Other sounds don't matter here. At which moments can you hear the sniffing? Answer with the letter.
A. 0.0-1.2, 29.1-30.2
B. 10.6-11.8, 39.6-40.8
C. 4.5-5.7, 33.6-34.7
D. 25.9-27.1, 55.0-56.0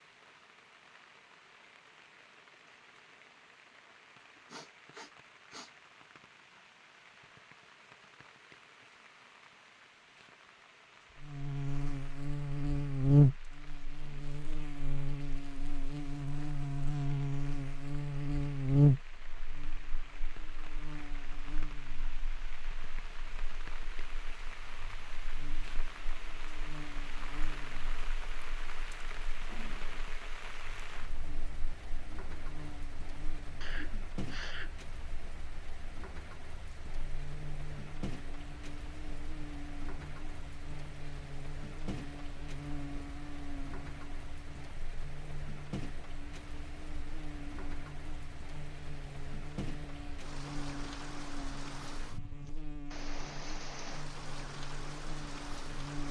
C.